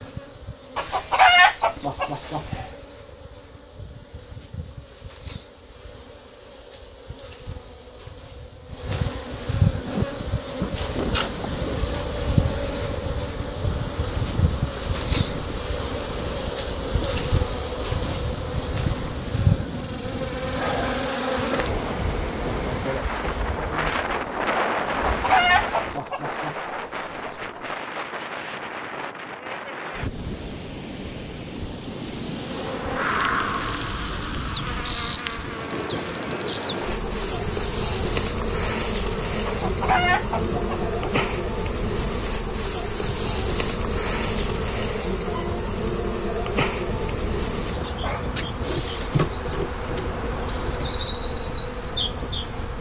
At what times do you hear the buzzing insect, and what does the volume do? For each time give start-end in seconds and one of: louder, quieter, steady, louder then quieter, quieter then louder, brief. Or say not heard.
0.0-26.0 louder
32.4-52.7 steady.